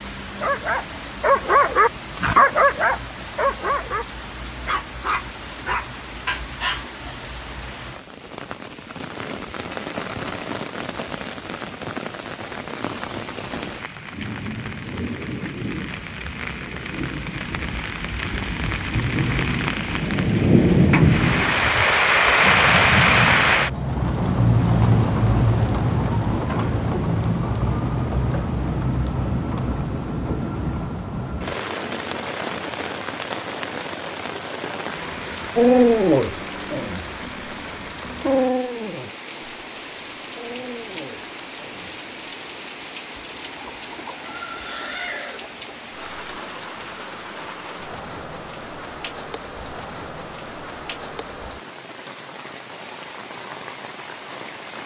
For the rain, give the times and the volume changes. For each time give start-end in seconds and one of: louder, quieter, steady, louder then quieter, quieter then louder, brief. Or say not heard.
0.0-54.8 louder then quieter.